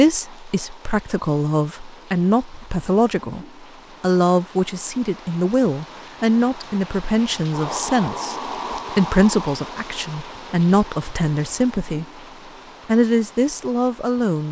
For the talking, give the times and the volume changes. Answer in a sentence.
You can hear the talking from 0.0 to 12.1 s, at a steady volume; and briefly from 12.8 to 14.4 s.